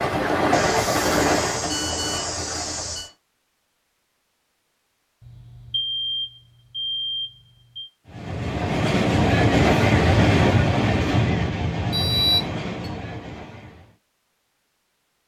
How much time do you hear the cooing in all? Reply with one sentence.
You can't hear the cooing here.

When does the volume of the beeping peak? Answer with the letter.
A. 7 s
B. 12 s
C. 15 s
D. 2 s
B.